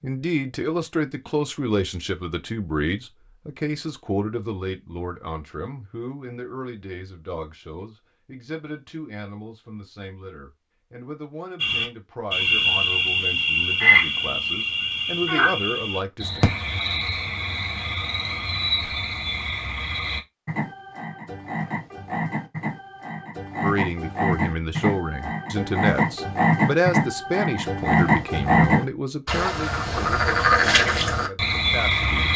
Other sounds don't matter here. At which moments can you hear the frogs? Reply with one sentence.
The frogs can be heard from 11.6 to 32.3 s.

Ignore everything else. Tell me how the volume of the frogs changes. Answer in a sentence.
The volume of the frogs goes down, then up.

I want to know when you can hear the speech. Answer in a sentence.
You can hear the speech from 0.0 to 16.4 s and from 23.6 to 32.3 s.